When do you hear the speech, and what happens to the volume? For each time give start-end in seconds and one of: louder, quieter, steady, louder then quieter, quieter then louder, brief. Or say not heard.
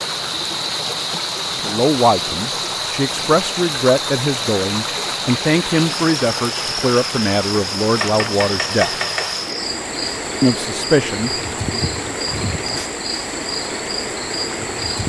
1.6-8.9 steady
10.4-11.8 brief.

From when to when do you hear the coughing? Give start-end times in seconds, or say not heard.
not heard.